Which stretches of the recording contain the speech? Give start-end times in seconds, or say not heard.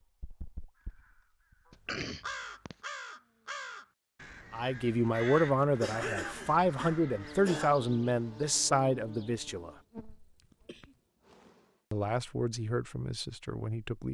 4.5-9.7, 11.9-14.0.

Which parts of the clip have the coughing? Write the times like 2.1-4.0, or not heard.
1.7-2.8, 5.8-7.7, 9.4-11.0.